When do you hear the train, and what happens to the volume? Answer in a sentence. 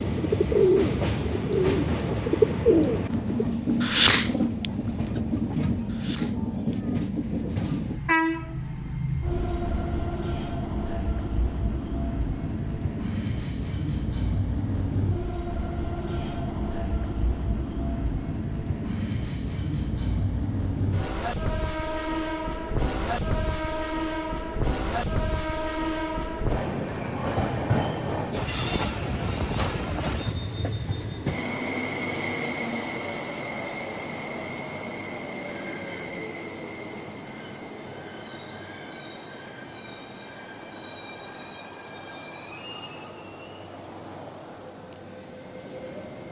The train can be heard from 0.0 to 46.2 s, getting quieter.